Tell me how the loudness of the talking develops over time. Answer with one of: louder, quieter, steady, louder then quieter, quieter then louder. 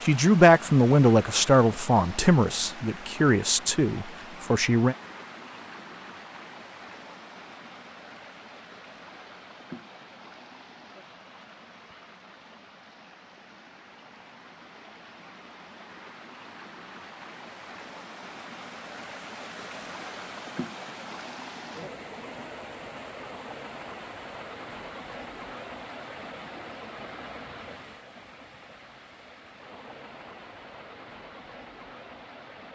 quieter.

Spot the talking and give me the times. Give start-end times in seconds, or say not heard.
0.0-5.0.